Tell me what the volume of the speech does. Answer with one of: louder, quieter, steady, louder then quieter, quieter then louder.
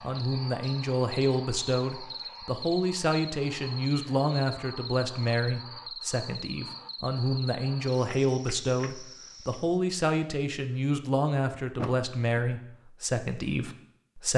steady.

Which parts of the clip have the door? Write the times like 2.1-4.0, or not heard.
11.8-12.4.